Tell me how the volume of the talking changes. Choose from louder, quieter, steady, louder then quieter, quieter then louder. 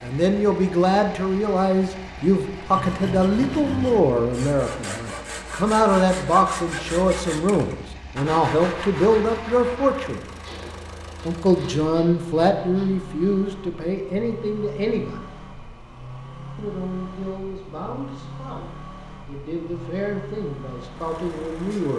quieter.